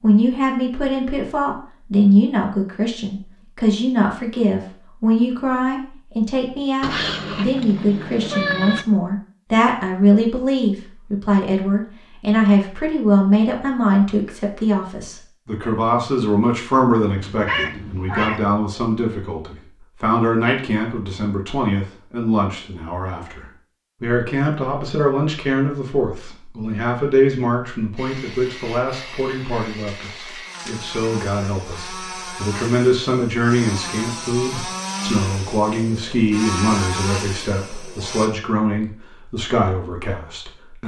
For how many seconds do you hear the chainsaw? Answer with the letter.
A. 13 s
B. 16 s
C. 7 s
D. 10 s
D.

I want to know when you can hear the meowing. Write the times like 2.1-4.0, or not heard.
6.8-8.8, 17.1-18.6, 29.9-30.9.